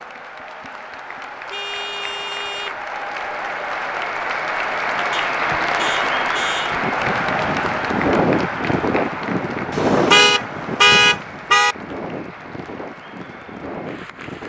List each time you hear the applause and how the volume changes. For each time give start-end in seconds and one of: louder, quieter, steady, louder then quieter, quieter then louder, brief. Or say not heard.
0.0-14.4 louder then quieter.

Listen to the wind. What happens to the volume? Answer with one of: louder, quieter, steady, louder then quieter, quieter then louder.
quieter.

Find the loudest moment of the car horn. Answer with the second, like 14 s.
11 s.